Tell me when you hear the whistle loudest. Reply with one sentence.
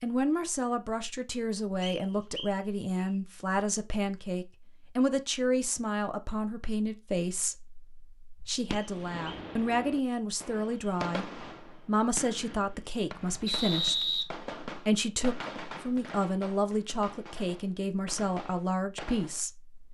The loudest moment of the whistle is at 14 seconds.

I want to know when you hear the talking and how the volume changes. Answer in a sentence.
The talking can be heard from 0.0 to 19.8 s, at a steady volume.